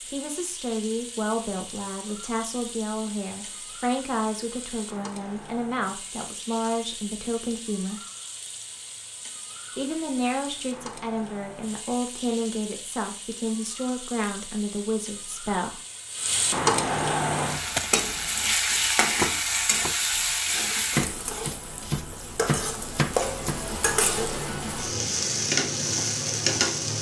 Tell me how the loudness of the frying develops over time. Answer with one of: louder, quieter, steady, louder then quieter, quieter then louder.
louder.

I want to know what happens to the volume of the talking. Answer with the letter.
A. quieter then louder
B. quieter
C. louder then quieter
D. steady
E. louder
D.